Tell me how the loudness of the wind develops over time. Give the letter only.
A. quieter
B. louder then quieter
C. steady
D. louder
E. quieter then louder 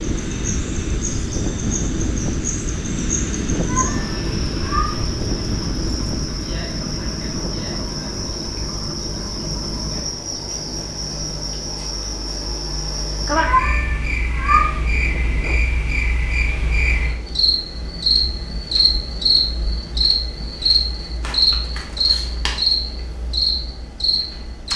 A.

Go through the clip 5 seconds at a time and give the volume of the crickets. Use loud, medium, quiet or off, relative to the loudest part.
medium, medium, medium, loud, loud.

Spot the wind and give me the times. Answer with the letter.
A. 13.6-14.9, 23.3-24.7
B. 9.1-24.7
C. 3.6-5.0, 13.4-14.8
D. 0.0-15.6
D.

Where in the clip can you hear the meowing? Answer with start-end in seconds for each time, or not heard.
3.6-5.0, 13.4-14.8.